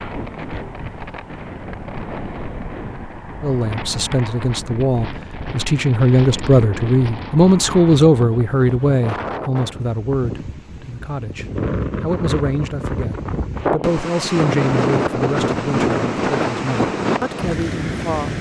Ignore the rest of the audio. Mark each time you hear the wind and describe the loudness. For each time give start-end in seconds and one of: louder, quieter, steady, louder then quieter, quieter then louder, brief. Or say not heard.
0.0-18.3 louder.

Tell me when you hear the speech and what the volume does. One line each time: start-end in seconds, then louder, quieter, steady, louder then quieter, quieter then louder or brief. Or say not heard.
3.4-18.3 quieter.